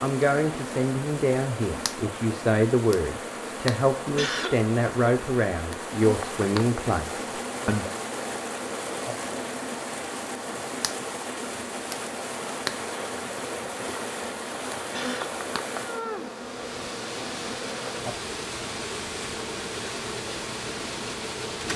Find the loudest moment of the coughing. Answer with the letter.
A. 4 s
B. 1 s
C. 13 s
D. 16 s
A.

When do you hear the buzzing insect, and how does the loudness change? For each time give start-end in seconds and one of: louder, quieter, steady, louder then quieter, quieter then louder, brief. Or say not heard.
0.0-21.7 steady.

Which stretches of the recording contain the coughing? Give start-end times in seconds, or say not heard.
4.0-4.7, 14.8-15.3.